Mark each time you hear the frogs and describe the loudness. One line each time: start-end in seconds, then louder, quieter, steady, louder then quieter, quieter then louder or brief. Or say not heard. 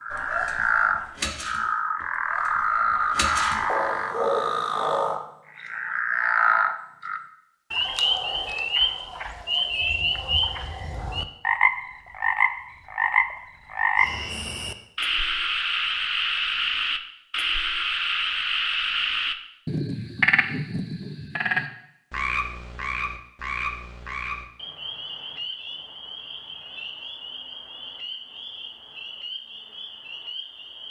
0.0-30.8 quieter.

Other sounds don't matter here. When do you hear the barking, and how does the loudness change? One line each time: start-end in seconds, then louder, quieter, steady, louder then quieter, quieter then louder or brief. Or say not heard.
0.1-5.2 quieter then louder.